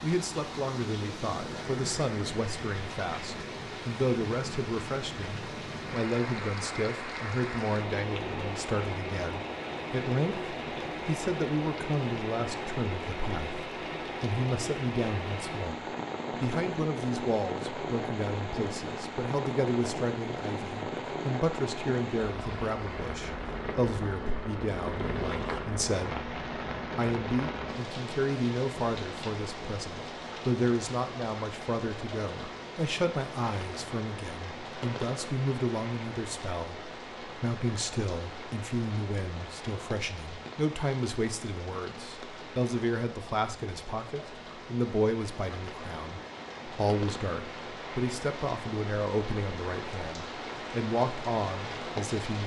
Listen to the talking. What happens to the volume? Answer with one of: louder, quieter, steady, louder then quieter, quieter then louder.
steady.